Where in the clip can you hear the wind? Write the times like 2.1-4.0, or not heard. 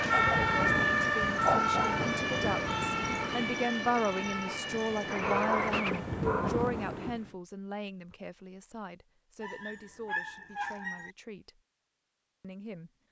0.0-7.3.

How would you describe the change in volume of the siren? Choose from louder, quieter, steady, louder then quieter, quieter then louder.
quieter.